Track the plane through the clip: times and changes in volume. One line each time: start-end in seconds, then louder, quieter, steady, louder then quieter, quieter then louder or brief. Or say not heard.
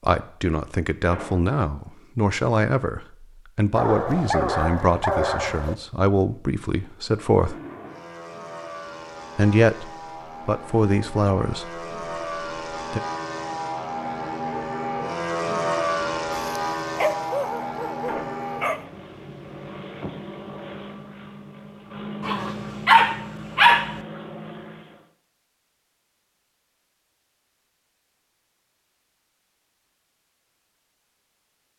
7.0-25.1 louder then quieter.